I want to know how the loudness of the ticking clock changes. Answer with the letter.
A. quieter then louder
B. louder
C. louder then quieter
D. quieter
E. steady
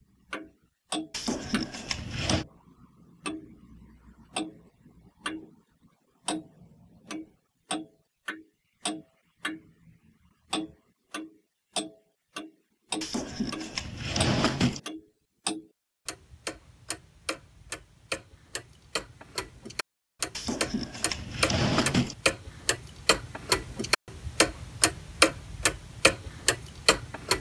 B.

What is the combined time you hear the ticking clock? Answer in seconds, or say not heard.
26 s.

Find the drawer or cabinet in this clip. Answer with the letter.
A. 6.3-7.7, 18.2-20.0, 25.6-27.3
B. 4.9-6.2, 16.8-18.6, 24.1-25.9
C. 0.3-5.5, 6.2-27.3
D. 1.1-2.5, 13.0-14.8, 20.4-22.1
D.